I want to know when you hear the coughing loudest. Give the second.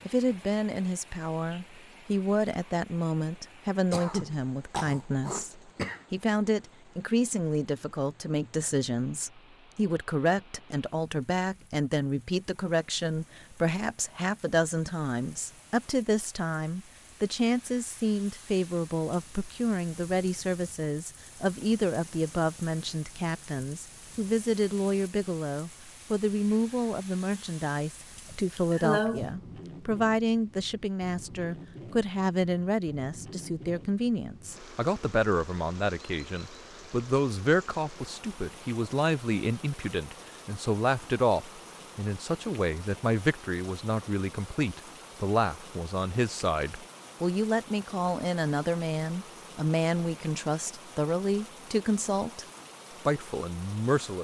29 s.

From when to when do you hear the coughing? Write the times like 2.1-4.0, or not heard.
3.9-6.0, 28.3-29.3.